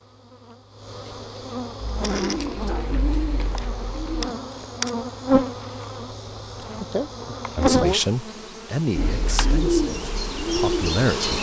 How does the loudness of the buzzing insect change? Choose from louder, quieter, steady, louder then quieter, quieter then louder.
louder then quieter.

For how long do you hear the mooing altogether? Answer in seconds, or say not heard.
not heard.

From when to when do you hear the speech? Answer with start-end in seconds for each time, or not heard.
7.5-11.3.